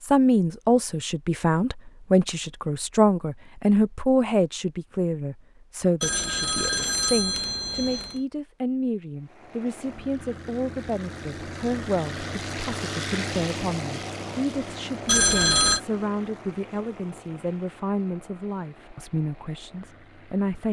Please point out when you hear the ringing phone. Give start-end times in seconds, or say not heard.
6.0-8.2, 15.1-15.8.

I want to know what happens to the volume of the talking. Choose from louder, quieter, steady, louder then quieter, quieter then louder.
quieter.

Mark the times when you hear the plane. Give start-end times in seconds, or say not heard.
9.2-20.6.